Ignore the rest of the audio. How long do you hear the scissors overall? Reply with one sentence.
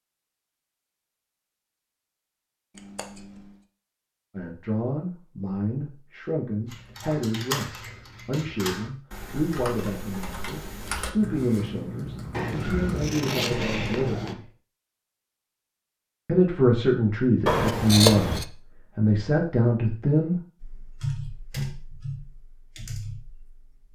The scissors can be heard for 4 seconds in total.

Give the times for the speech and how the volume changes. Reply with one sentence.
The speech can be heard from 4.3 to 14.5 s, at a steady volume; and from 16.2 to 20.4 s, at a steady volume.